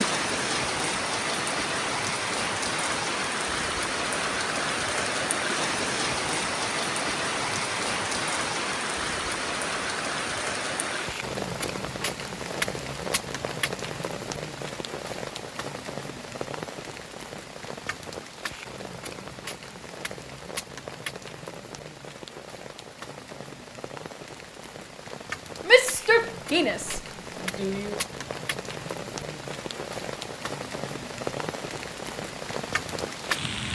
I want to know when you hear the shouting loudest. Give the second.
26 s.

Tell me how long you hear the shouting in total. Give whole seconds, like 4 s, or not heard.
2 s.